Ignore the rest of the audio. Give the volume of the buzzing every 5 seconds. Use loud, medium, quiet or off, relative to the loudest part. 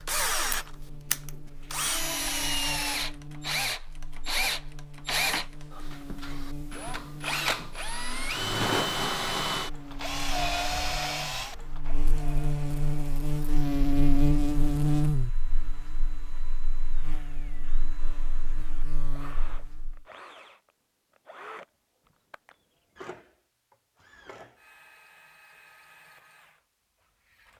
quiet, quiet, loud, medium, off, off.